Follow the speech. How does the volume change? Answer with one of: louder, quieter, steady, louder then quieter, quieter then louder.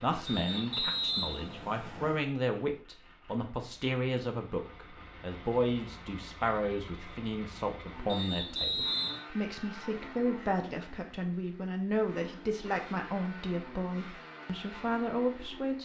steady.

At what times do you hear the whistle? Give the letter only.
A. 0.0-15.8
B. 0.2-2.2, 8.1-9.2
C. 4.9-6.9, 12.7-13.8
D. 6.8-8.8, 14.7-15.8
B.